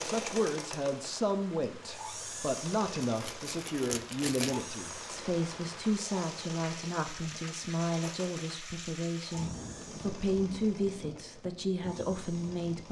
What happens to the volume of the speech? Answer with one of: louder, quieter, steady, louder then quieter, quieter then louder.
steady.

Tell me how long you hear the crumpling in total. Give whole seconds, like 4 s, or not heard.
2 s.